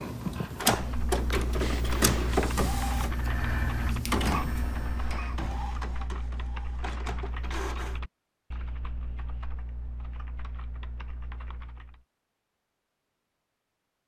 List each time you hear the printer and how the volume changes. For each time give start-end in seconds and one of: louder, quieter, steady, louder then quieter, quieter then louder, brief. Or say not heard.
0.0-8.0 quieter.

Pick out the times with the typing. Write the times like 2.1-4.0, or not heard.
0.7-12.1.